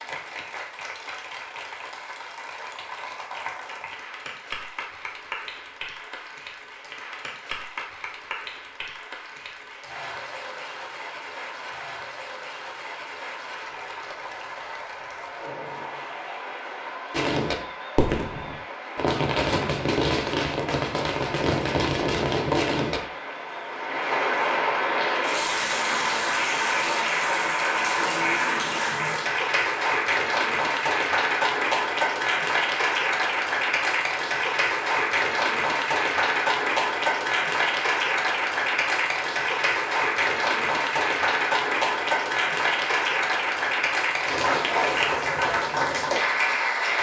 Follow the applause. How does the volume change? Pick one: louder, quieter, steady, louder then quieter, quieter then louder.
louder.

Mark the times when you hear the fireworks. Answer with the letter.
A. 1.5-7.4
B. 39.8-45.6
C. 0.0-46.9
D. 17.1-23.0
D.